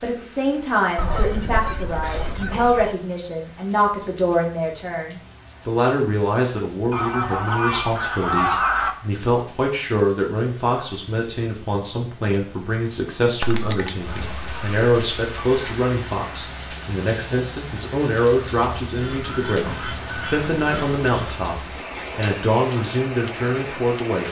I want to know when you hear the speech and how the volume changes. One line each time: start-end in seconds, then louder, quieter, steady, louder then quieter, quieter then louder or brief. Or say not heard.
0.0-24.2 steady.